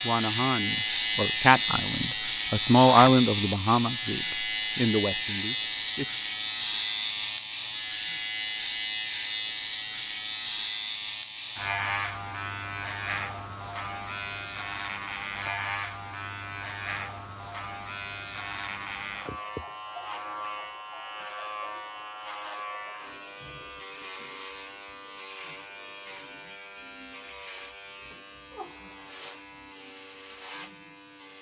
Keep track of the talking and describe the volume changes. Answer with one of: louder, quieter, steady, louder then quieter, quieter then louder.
louder then quieter.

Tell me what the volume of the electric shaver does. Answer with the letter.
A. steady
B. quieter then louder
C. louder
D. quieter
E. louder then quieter
D.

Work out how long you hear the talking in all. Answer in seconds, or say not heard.
6 s.